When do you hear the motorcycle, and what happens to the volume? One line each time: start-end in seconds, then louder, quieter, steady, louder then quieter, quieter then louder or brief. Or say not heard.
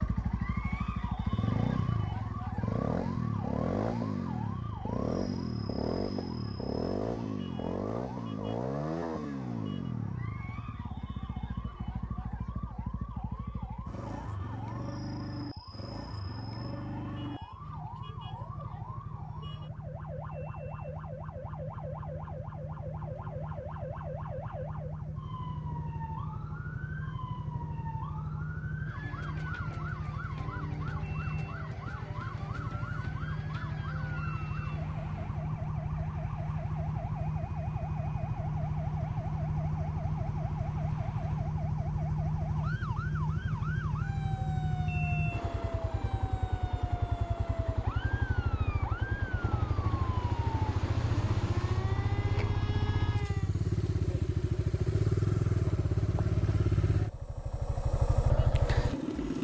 0.0-59.3 quieter then louder.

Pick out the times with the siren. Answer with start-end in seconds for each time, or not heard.
0.0-53.5.